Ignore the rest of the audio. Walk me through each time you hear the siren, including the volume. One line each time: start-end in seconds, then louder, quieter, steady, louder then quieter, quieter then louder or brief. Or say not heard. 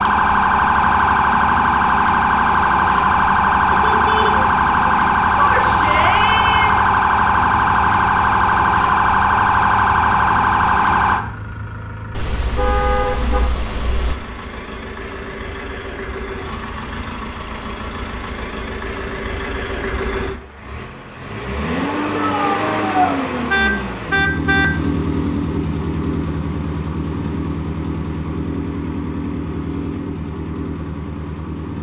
0.0-11.2 steady.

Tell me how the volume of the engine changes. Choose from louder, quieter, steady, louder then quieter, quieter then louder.
louder.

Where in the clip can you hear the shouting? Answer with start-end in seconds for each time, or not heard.
5.3-6.8, 22.1-23.2.